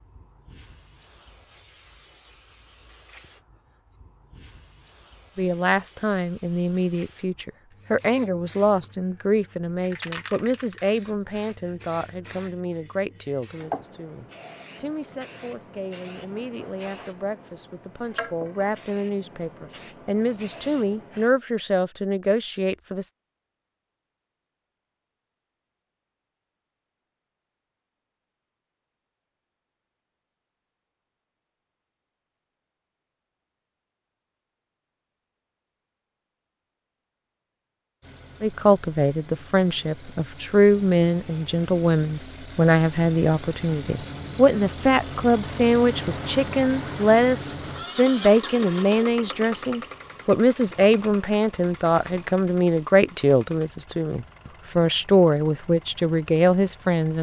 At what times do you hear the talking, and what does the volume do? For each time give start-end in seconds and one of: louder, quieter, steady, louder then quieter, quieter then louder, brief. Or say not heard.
5.3-23.1 quieter then louder
38.4-57.1 steady.